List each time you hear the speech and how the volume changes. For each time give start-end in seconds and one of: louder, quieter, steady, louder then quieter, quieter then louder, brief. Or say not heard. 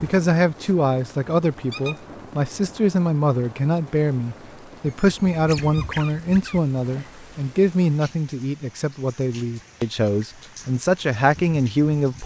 0.0-12.2 steady.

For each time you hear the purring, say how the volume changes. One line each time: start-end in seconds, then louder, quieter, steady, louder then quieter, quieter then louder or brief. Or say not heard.
not heard.